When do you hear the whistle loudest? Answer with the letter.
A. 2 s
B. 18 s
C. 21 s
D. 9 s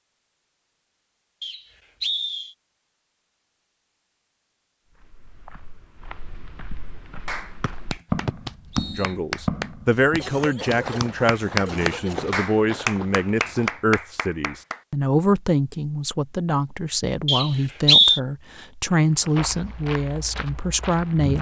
B.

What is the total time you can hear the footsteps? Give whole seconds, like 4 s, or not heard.
11 s.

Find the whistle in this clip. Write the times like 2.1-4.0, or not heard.
1.4-2.5, 7.6-9.1, 17.2-18.2.